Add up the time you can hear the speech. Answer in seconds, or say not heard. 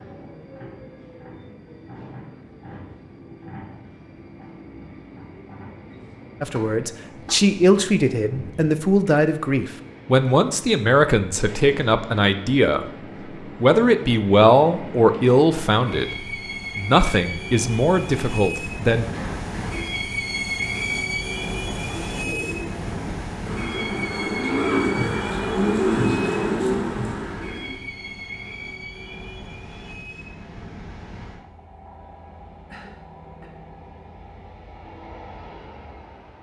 11 s.